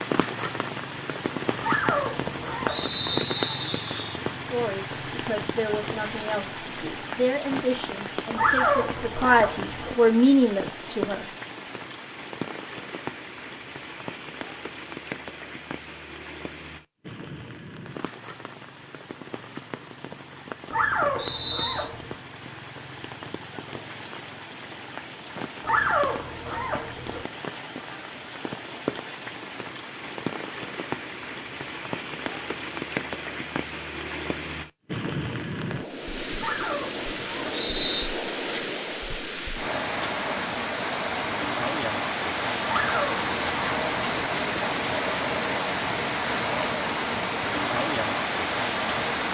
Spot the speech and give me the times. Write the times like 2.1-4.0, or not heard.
4.3-11.2.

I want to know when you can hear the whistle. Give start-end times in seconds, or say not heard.
2.7-4.2, 21.1-21.9, 37.5-38.1.